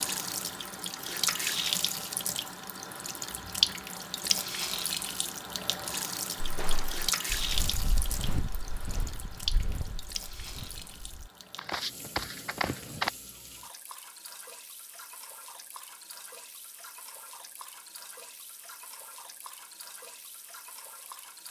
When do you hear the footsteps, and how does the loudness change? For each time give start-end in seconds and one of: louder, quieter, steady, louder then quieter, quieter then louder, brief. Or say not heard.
6.4-13.1 quieter then louder.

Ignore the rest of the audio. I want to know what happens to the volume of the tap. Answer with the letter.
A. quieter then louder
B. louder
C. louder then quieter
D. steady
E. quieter
E.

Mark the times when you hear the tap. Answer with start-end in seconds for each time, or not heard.
0.0-21.4.